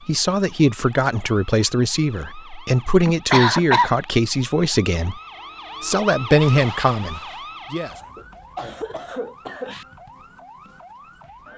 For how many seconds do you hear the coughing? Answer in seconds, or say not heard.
3 s.